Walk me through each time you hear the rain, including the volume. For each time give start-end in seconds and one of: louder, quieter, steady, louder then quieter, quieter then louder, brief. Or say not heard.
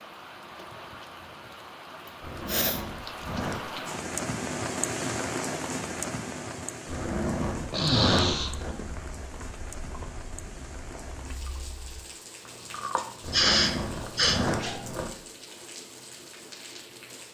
0.0-17.3 louder then quieter.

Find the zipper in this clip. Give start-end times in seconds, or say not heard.
2.2-3.8, 6.8-8.7, 13.2-15.1.